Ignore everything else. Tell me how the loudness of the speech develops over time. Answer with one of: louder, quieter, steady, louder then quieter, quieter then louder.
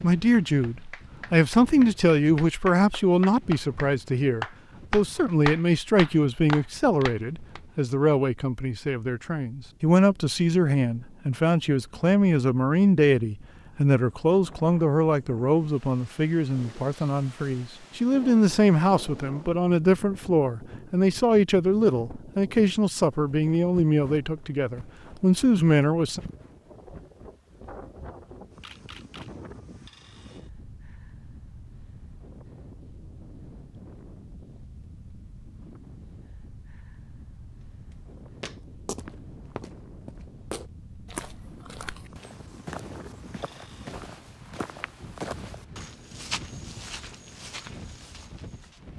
steady.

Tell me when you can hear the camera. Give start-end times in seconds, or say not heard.
28.6-29.3.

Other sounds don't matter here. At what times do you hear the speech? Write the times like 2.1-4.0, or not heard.
0.0-26.2.